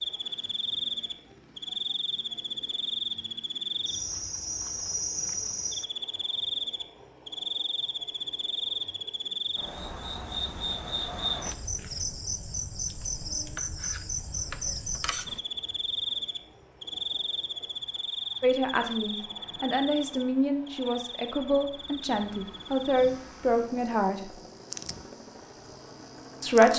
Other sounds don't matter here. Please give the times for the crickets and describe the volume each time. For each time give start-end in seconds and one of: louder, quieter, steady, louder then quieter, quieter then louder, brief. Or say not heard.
0.0-26.7 quieter.